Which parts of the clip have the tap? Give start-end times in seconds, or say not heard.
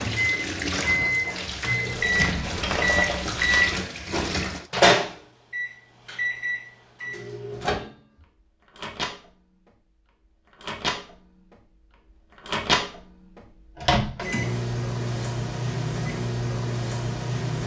0.0-4.7.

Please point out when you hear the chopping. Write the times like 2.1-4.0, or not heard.
not heard.